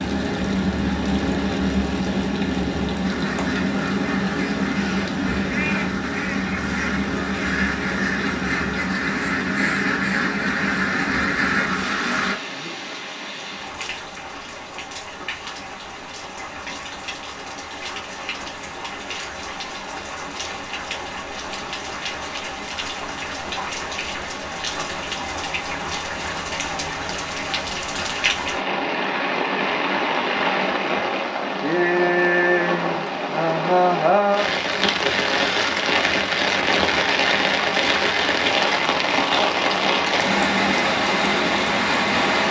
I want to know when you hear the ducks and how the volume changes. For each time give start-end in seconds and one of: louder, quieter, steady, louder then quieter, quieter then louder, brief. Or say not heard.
3.0-12.3 louder.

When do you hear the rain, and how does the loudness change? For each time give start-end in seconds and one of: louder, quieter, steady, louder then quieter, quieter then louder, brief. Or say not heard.
0.0-42.4 quieter then louder.